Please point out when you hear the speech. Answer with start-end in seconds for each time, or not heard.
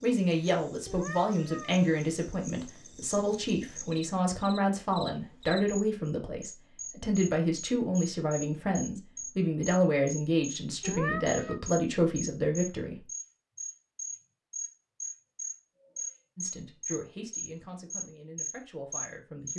0.0-13.1, 16.4-19.5.